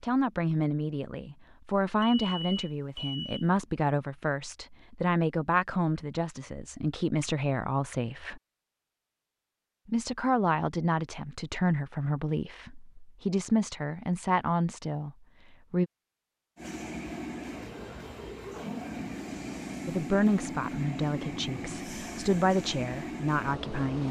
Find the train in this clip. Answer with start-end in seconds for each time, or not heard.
16.6-24.0.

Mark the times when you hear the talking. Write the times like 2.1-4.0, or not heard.
0.0-8.4, 9.8-15.9, 19.9-24.0.